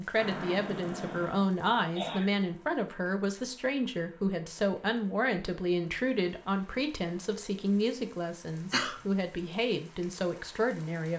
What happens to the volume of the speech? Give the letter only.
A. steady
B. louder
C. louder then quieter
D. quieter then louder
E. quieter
A.